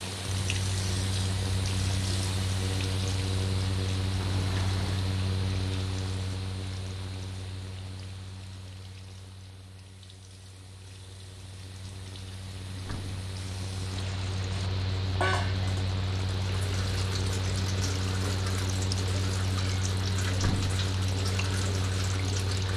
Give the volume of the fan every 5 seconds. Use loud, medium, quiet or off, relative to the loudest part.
loud, medium, medium, loud, loud.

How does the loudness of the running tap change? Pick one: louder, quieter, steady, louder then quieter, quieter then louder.
quieter then louder.